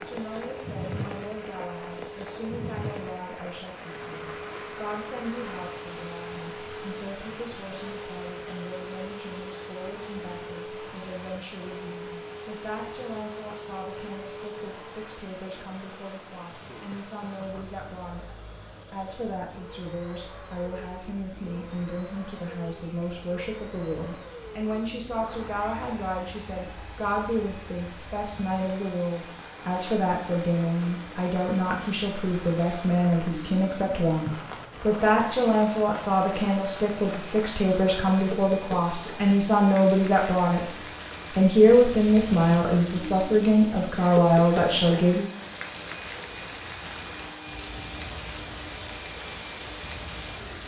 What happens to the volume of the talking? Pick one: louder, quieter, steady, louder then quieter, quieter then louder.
louder.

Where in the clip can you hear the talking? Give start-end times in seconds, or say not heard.
0.0-40.7, 41.4-45.2.